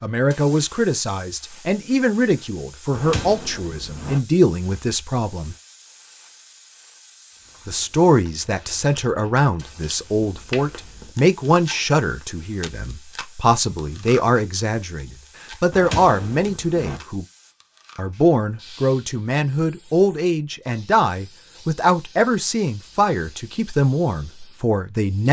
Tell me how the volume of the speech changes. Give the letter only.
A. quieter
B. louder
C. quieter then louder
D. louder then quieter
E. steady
E.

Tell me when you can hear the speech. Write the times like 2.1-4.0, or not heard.
0.0-5.5, 7.7-17.2, 17.9-25.2.